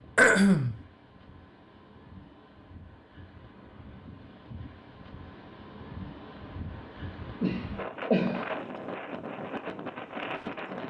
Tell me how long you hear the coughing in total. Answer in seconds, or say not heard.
2 s.